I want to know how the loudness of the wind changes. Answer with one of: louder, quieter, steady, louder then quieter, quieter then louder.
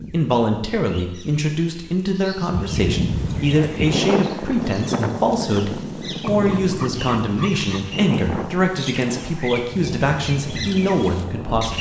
quieter.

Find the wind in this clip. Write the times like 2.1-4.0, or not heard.
2.5-11.7.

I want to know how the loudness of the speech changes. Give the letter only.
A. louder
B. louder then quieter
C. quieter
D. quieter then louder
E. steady
E.